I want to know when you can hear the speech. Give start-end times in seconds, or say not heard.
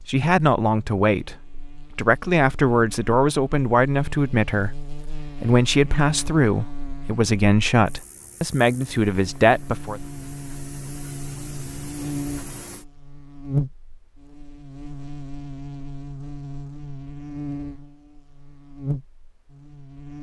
0.1-10.0.